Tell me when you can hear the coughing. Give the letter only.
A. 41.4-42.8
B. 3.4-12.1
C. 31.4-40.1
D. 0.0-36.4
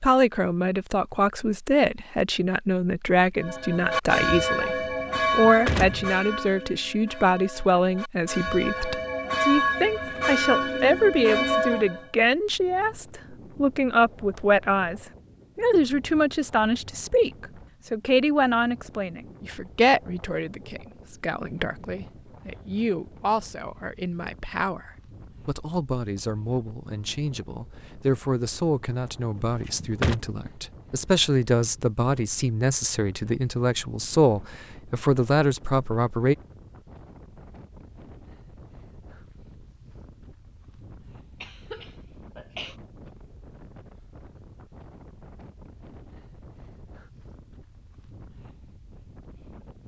A.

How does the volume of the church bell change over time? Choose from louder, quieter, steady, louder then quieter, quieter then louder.
quieter then louder.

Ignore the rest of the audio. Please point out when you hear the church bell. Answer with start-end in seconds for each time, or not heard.
3.4-12.1.